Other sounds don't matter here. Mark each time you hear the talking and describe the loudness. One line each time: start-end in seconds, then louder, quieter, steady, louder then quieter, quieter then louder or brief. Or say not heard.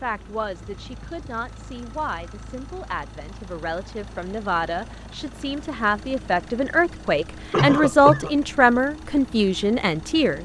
0.0-10.3 louder.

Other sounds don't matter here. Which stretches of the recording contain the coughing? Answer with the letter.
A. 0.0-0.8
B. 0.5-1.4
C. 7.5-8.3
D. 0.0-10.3
C.